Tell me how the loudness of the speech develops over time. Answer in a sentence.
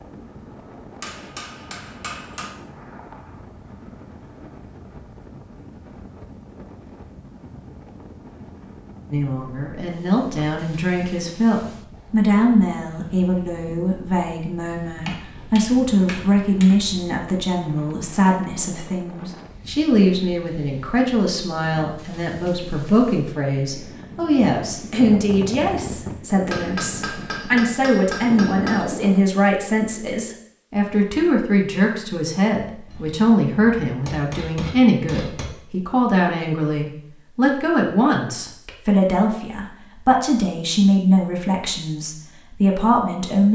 The loudness of the speech stays about the same.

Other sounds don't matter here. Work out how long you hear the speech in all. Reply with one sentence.
The speech can be heard for 34 seconds in total.